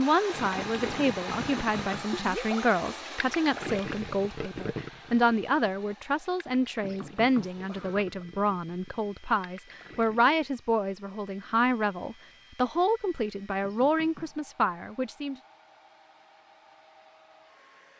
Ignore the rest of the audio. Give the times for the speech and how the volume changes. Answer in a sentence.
You can hear the speech from 0.0 to 15.3 s, at a steady volume.